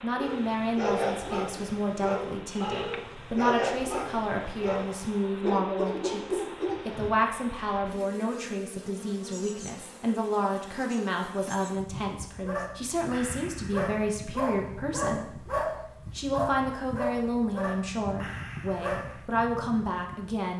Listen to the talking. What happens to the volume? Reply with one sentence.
The loudness of the talking stays about the same.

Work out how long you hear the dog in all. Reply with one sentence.
You can hear the dog for 14 seconds altogether.